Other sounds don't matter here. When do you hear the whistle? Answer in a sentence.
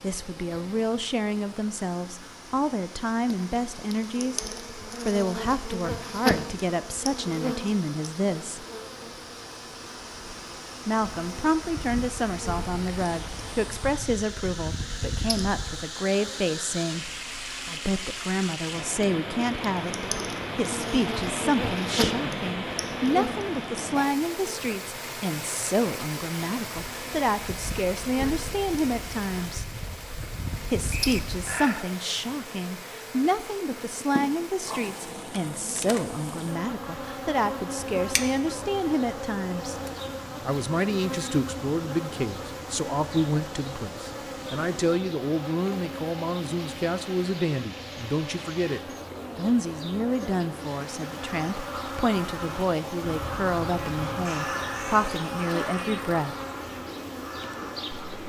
You can hear the whistle from 30.9 to 31.3 s.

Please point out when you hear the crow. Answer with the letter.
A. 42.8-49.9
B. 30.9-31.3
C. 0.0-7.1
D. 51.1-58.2
D.